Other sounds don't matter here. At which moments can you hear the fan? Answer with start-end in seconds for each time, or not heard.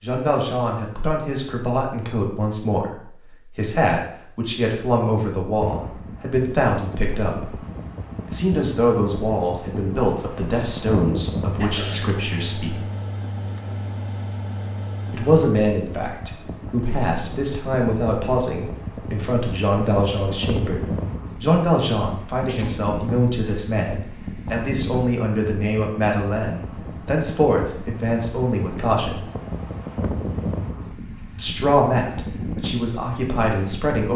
5.5-34.0.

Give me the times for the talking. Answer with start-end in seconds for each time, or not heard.
0.0-7.5, 8.2-12.8, 15.1-29.2, 31.4-34.1.